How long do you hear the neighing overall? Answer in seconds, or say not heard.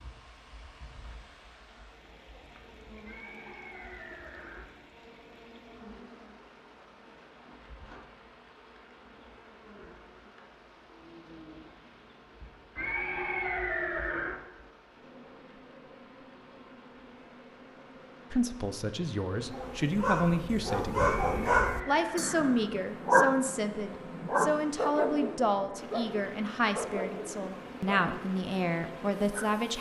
5 s.